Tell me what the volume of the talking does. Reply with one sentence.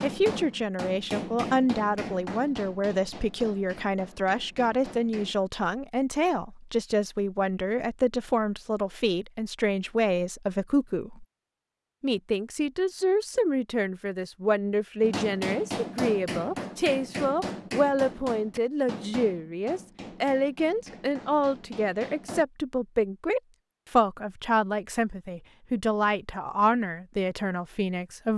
The loudness of the talking stays about the same.